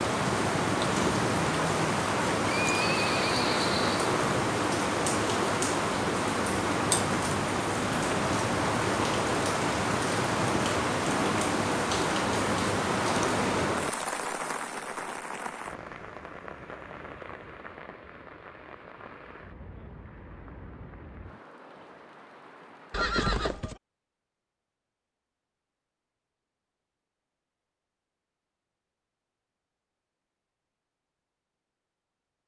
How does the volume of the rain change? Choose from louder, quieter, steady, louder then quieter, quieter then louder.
quieter.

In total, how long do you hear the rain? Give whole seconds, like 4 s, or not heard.
23 s.